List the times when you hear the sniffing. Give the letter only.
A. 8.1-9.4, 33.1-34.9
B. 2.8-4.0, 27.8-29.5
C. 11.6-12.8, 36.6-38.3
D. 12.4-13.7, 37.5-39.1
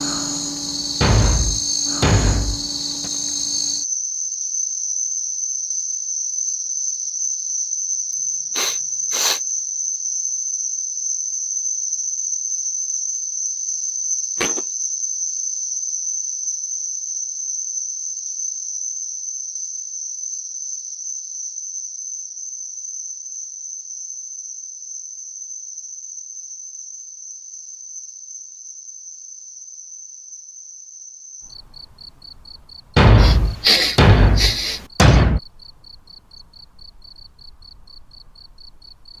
A.